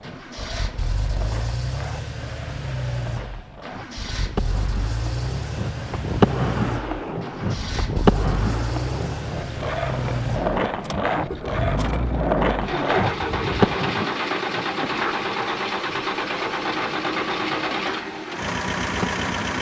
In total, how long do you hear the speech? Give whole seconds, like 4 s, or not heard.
not heard.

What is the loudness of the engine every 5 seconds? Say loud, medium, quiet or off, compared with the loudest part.
medium, medium, loud, loud.